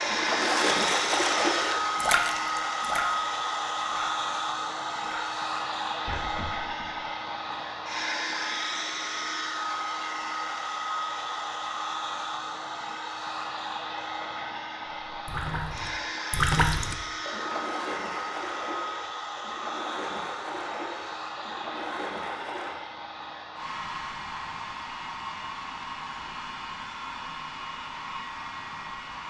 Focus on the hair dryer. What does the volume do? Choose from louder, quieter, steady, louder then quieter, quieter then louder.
quieter.